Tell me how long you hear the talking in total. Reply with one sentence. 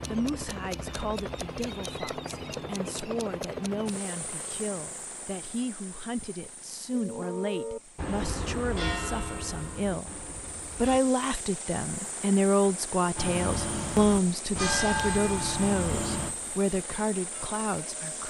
The talking can be heard for 18 seconds in total.